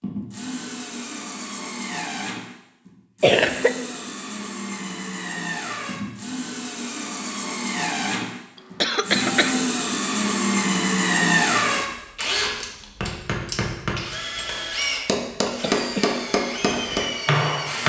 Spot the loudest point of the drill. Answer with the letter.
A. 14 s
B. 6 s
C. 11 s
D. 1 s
C.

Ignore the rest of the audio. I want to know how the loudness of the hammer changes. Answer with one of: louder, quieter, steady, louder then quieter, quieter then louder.
quieter then louder.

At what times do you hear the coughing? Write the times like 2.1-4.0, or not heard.
3.2-3.7, 8.6-9.6, 15.6-16.2.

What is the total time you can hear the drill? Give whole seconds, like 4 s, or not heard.
18 s.